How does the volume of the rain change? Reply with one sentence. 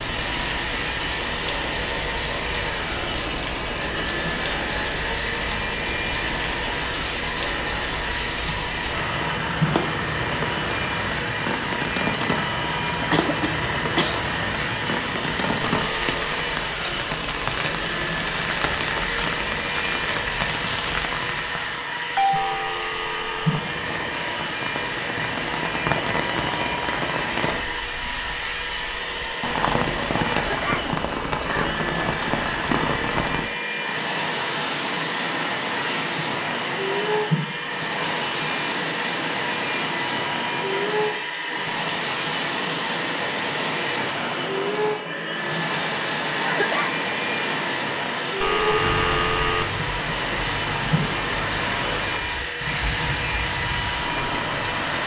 The loudness of the rain stays about the same.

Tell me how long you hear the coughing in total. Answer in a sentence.
The coughing can be heard for 3 seconds in total.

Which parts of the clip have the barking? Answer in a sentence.
You can't hear the barking here.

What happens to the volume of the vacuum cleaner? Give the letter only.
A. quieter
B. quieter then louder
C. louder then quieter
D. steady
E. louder
D.